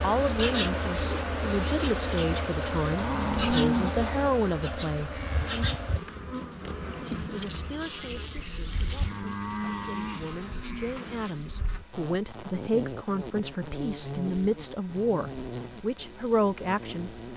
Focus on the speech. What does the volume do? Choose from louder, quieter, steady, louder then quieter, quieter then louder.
quieter then louder.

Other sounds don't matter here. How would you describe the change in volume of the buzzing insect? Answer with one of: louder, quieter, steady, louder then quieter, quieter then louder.
quieter.